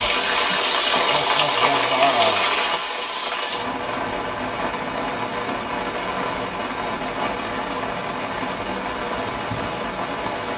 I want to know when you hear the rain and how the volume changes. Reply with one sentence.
The rain can be heard from 0.0 to 10.5 s, getting quieter.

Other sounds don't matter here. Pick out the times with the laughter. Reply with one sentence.
The laughter can be heard from 1.1 to 2.5 s.